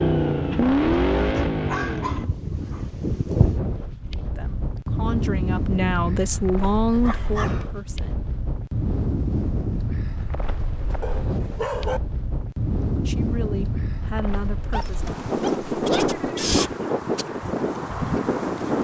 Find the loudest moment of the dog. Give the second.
12 s.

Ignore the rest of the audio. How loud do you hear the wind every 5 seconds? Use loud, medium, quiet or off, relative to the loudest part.
medium, medium, medium, loud.